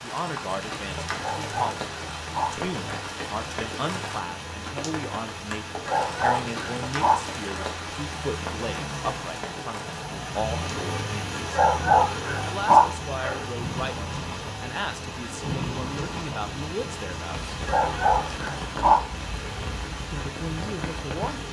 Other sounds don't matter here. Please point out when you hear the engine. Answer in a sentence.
You can hear the engine from 0.0 to 21.4 s.